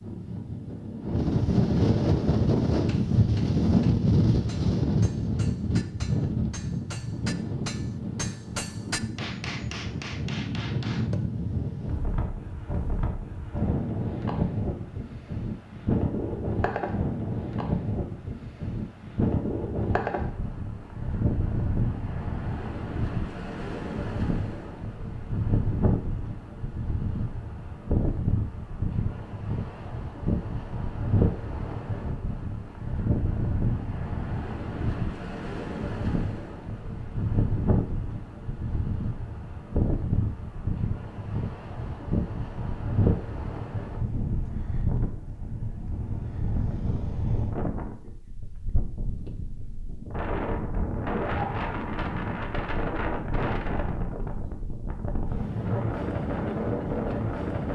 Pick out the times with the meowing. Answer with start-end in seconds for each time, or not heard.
not heard.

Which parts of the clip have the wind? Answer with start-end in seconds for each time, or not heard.
0.0-57.7.